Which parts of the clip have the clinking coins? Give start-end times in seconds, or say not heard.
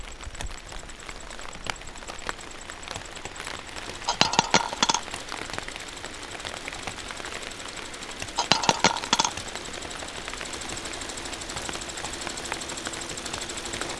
4.0-5.0, 8.3-9.3.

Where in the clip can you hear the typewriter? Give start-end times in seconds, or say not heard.
not heard.